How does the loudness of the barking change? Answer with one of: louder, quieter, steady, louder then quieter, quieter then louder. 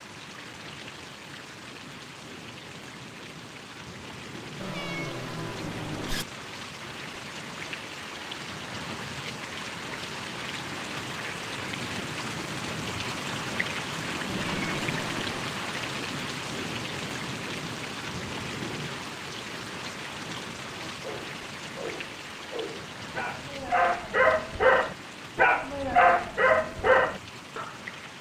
louder.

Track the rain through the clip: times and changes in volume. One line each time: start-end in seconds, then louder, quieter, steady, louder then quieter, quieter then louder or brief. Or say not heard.
0.0-28.1 louder then quieter.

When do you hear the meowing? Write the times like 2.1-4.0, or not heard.
4.6-6.2, 14.2-15.3.